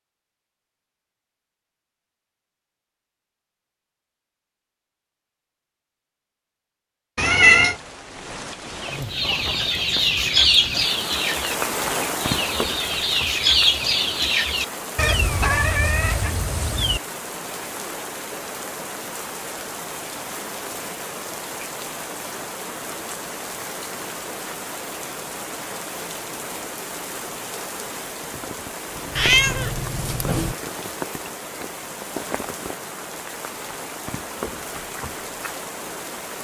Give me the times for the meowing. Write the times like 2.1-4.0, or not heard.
7.2-7.8, 14.9-17.0, 29.1-30.6.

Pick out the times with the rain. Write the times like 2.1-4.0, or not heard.
7.7-36.3.